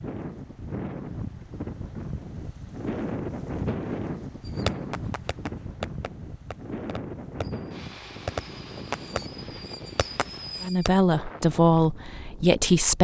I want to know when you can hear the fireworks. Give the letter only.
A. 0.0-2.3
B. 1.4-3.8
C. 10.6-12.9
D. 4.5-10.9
D.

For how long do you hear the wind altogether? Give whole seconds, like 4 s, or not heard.
13 s.